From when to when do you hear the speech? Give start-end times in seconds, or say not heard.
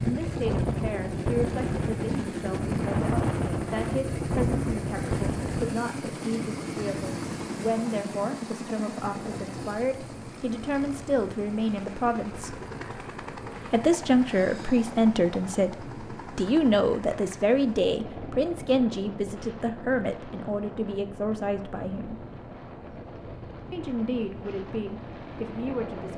0.0-12.6, 13.7-22.2, 23.7-26.1.